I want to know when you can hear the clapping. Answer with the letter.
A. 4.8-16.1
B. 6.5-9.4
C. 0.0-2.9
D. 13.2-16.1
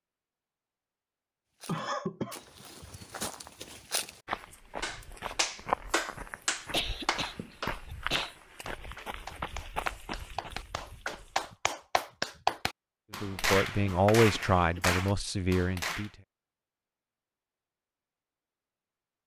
A.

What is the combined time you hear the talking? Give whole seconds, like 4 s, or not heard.
3 s.